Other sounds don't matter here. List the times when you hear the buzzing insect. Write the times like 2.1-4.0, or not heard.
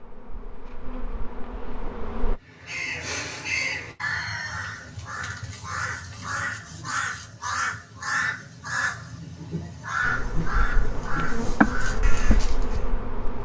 0.0-2.4, 10.1-13.4.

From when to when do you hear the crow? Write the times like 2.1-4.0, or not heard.
2.4-12.8.